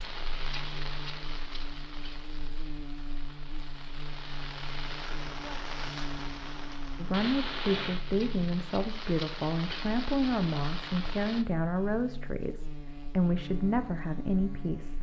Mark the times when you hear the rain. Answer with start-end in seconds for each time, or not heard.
0.0-11.4.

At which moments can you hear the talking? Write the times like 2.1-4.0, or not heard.
7.0-14.9.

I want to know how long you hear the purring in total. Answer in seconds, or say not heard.
not heard.